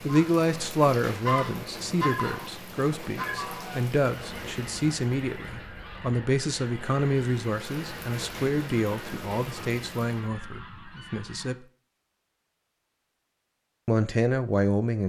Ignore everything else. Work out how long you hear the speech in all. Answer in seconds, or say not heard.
13 s.